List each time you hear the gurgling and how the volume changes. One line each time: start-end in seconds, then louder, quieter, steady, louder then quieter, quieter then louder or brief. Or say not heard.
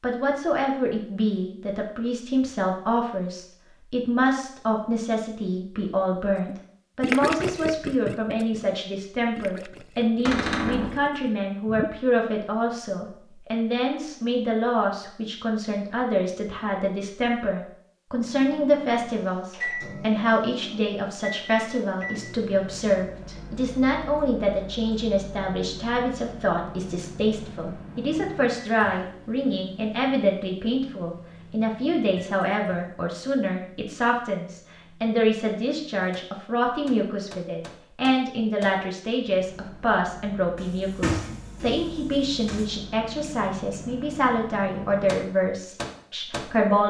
6.3-11.9 quieter then louder.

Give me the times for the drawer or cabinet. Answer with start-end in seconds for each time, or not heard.
10.2-11.0, 40.5-42.6.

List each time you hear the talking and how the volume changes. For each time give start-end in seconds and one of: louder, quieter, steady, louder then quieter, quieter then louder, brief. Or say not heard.
0.0-46.8 steady.